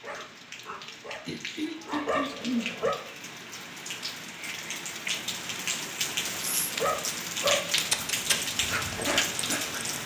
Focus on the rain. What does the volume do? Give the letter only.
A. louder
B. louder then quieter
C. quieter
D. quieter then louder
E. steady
A.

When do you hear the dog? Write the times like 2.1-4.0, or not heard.
0.0-3.0, 6.7-10.0.